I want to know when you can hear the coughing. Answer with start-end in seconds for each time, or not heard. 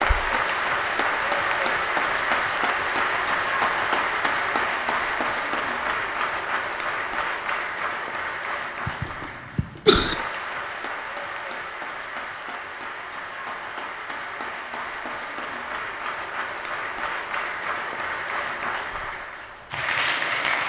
8.8-10.2.